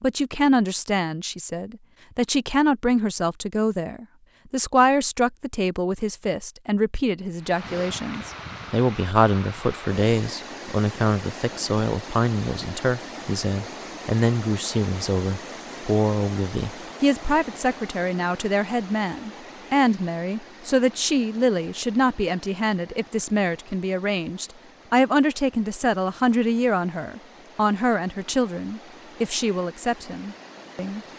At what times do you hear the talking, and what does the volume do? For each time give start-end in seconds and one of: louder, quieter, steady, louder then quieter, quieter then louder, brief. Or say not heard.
0.0-31.0 steady.